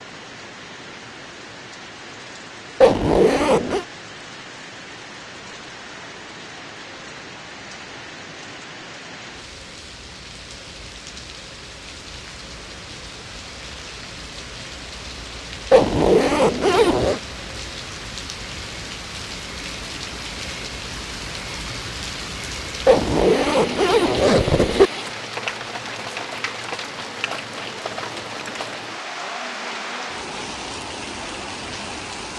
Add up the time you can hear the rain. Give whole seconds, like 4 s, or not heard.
32 s.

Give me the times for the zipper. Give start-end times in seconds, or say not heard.
2.8-3.9, 15.7-17.2, 22.9-24.9.